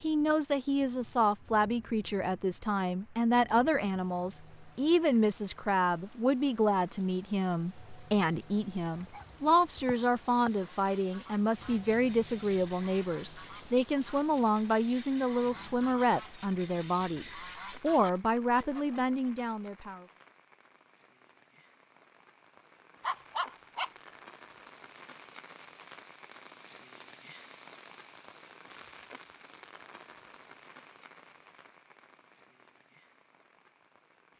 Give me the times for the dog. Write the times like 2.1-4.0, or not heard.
8.9-10.5, 23.0-24.1.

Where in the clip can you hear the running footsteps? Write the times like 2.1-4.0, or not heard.
not heard.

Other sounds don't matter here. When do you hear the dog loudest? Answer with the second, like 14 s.
23 s.